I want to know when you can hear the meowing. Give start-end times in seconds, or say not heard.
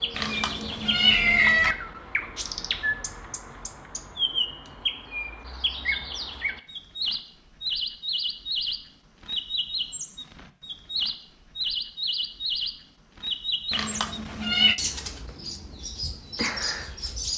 0.1-1.8, 13.7-14.8.